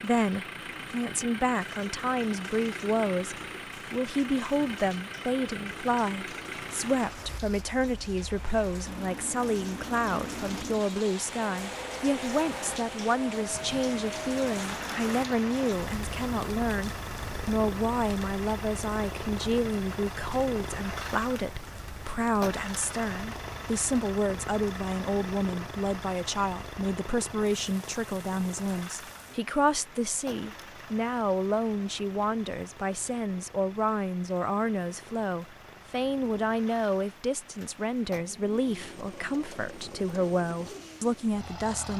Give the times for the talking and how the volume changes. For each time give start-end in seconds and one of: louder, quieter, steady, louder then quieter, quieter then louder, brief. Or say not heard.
0.0-41.9 steady.